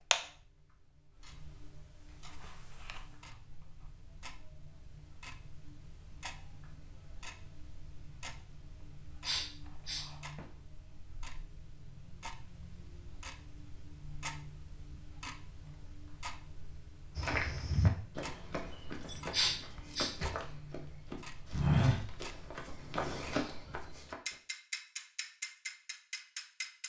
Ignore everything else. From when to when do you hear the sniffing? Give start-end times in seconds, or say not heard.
9.2-10.1, 19.3-20.1.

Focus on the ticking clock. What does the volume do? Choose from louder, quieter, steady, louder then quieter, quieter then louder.
quieter then louder.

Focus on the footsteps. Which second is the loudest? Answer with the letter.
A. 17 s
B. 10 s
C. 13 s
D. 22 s
D.